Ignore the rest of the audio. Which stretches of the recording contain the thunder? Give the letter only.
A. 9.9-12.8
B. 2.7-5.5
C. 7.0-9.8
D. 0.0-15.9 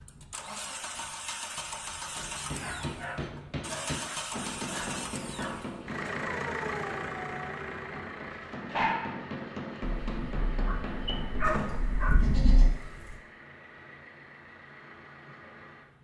A.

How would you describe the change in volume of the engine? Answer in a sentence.
The volume of the engine goes down.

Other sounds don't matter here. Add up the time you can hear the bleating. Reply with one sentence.
The bleating can be heard for 2 seconds in total.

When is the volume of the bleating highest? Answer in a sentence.
The loudest moment of the bleating is at 12 seconds.